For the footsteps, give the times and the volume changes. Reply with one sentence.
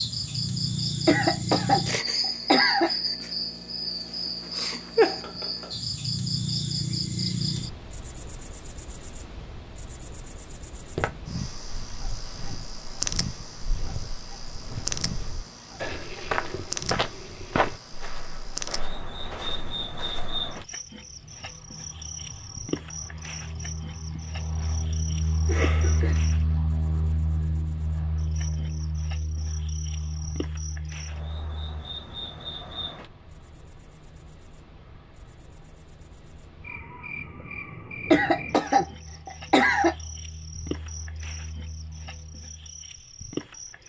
The footsteps can be heard from 10.9 to 20.4 s, getting louder then quieter.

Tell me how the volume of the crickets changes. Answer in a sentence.
The volume of the crickets goes down.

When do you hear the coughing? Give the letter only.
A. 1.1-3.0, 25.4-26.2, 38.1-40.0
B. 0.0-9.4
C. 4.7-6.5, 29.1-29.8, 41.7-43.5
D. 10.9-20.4
A.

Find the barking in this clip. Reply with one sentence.
The barking can't be heard in this clip.